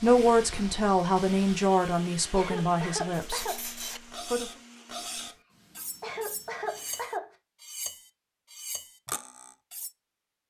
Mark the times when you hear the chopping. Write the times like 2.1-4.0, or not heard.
not heard.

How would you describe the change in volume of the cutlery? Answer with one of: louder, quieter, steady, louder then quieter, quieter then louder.
steady.